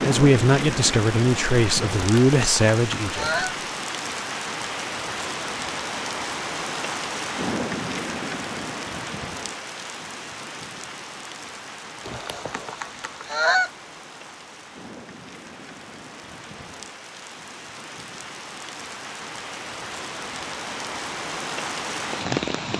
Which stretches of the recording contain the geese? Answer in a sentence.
The geese can be heard from 1.9 to 3.5 s and from 12.1 to 13.7 s.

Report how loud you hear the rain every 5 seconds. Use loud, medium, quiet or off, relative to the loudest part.
loud, loud, medium, medium, loud.